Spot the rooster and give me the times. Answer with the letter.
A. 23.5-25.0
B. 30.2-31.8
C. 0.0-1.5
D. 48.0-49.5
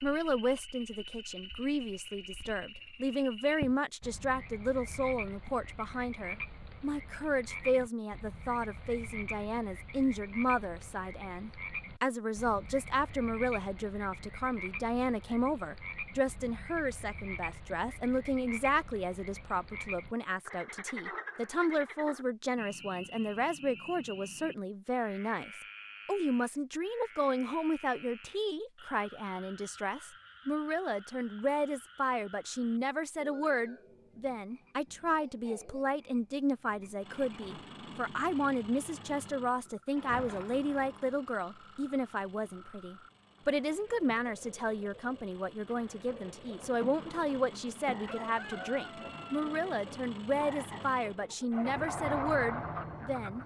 D.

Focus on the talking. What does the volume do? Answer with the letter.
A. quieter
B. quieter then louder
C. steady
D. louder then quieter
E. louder
C.